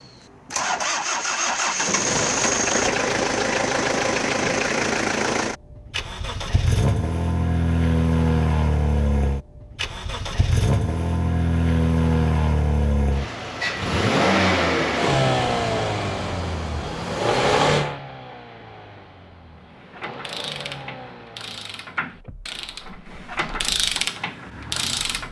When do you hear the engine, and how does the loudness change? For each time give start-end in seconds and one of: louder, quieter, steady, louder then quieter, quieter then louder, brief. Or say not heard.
0.0-25.2 quieter.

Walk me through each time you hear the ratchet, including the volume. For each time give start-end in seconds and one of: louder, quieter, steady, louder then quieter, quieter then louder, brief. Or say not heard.
19.8-25.2 louder.